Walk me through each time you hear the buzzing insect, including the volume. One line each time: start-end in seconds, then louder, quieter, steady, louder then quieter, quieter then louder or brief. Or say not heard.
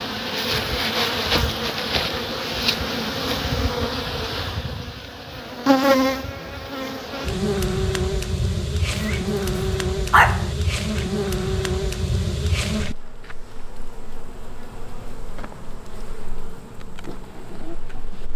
0.0-18.3 quieter.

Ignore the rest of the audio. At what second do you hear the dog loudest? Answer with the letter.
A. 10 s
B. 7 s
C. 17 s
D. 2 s
A.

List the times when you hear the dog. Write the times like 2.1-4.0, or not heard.
8.9-10.4.